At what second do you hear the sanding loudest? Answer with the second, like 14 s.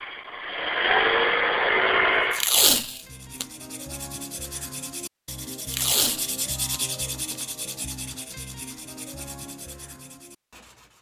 7 s.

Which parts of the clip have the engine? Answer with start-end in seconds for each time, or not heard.
0.0-2.5.